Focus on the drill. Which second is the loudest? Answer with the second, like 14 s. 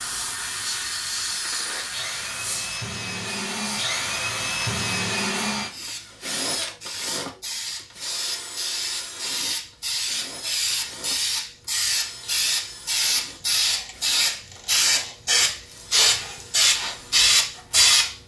5 s.